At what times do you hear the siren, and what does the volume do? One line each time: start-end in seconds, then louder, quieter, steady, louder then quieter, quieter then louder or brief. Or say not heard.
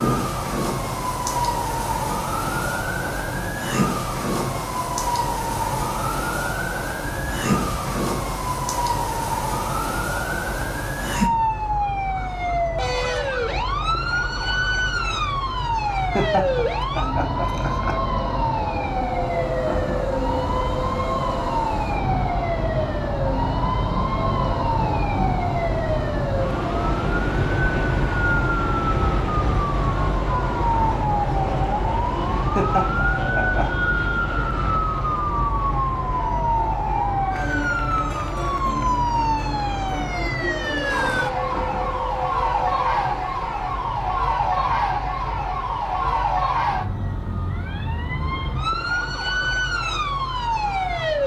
0.0-51.2 steady.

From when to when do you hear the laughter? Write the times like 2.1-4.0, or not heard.
15.9-17.9, 32.4-33.6.